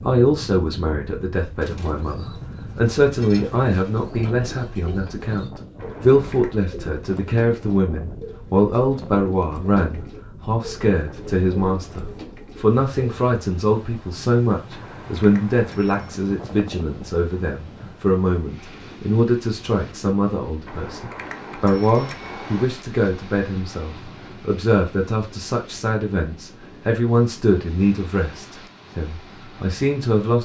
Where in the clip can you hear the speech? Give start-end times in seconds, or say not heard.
0.0-30.3.